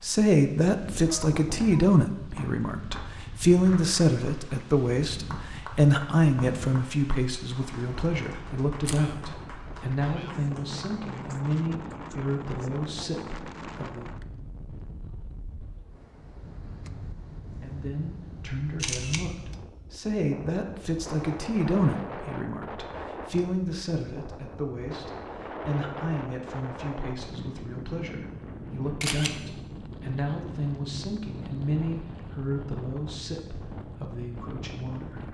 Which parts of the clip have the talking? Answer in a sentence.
The talking can be heard from 0.0 to 14.1 s and from 17.6 to 35.2 s.